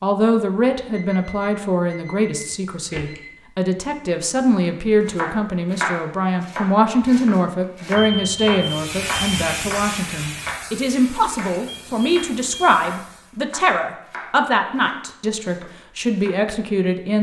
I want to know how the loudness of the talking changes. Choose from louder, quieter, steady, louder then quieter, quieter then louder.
steady.